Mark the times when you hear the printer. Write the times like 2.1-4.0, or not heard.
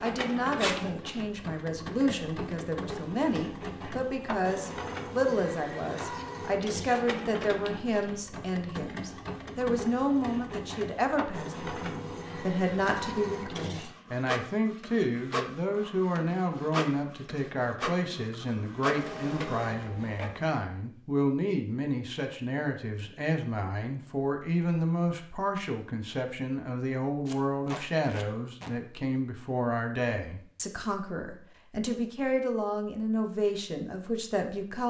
0.0-20.5.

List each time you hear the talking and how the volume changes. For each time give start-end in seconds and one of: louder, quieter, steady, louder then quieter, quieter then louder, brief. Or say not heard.
0.0-34.8 steady.